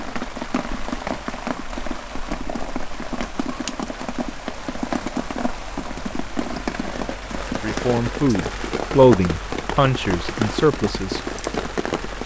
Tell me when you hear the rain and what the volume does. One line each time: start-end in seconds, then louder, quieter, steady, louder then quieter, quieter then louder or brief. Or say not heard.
0.0-12.2 steady.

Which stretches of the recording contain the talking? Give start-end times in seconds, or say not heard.
7.6-11.2.